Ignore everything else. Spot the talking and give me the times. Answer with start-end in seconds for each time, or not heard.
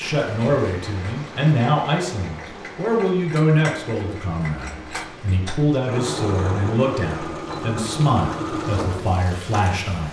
0.0-10.0.